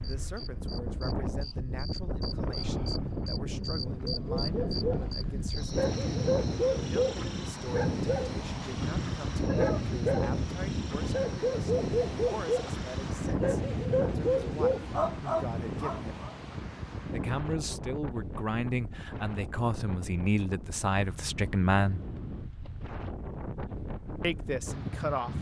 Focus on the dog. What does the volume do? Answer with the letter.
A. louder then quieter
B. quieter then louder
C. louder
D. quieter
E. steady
E.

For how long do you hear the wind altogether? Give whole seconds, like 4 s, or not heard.
25 s.